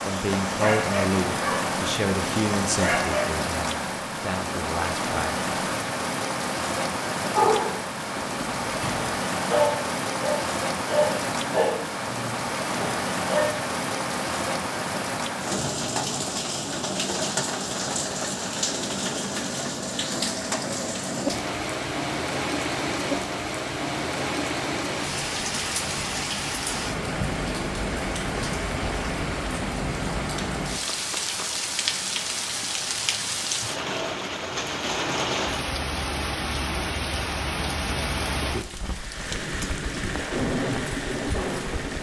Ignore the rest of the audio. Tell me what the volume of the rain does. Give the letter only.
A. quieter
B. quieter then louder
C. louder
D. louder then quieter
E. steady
E.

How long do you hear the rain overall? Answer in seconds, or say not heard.
42 s.